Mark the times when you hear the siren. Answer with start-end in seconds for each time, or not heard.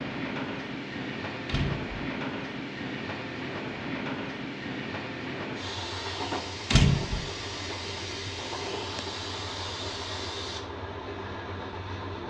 not heard.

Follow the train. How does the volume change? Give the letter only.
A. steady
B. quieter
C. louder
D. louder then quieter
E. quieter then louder
A.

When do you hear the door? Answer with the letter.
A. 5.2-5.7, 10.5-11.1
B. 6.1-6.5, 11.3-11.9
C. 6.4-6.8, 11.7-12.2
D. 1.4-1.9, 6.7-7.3
D.